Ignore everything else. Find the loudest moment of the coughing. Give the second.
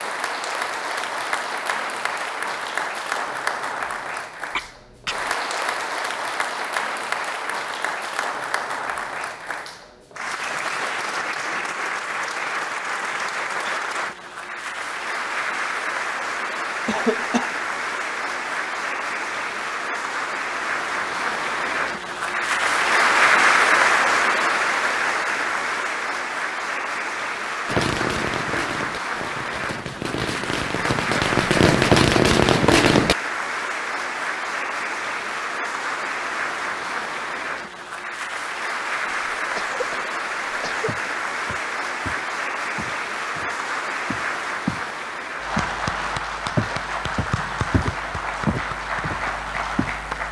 17 s.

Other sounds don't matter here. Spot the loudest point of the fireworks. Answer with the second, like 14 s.
32 s.